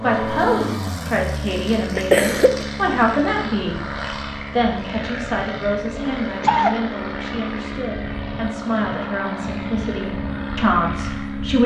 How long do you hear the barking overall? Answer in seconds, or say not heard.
not heard.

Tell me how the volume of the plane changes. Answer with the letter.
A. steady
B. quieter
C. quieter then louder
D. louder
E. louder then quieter
A.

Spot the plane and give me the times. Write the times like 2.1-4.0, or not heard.
0.0-11.6.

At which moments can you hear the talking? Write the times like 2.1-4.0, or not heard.
0.0-3.8, 4.5-11.6.